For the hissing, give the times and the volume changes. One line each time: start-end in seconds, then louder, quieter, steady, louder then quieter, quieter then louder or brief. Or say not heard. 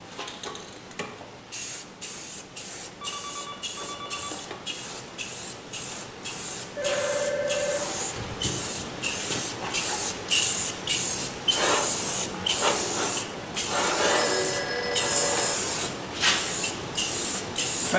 0.0-17.9 louder.